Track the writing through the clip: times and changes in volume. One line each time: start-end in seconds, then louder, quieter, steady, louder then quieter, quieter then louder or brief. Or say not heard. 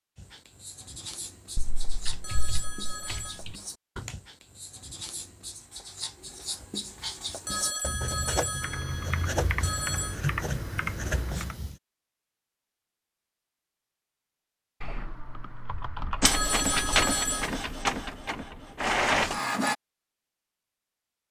0.1-11.8 louder.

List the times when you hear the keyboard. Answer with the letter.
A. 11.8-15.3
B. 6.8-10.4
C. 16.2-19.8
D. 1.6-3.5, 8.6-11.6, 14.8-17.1
D.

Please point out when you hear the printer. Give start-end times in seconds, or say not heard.
16.2-19.8.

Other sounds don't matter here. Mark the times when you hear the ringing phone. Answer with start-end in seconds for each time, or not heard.
2.2-3.4, 7.5-10.2, 16.3-17.5.